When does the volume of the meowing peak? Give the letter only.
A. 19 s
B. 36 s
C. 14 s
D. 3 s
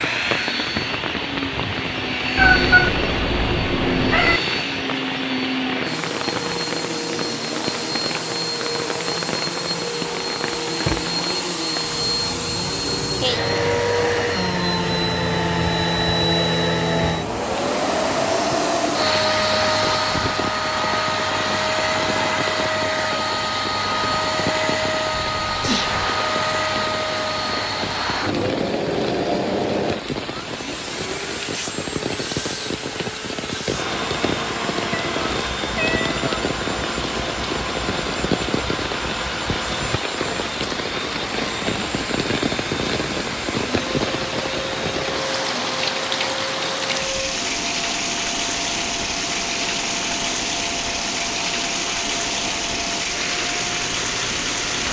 D.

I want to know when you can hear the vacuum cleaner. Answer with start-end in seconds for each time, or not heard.
0.0-54.8.